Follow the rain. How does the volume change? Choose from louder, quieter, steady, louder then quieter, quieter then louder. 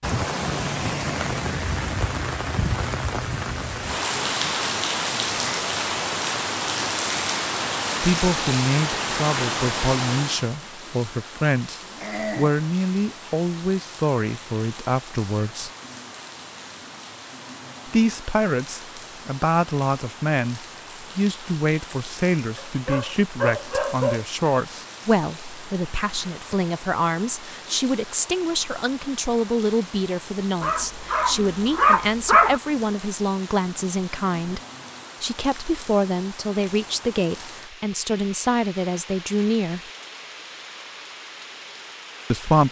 quieter.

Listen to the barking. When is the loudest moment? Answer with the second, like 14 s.
32 s.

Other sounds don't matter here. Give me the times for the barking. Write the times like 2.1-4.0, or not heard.
11.8-12.5, 22.6-24.2, 30.6-32.6.